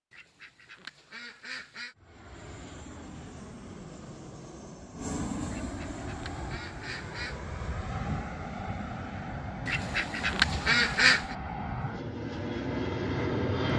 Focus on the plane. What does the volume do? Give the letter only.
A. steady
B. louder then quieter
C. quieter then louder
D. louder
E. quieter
D.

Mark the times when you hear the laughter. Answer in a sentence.
The laughter can't be heard in this clip.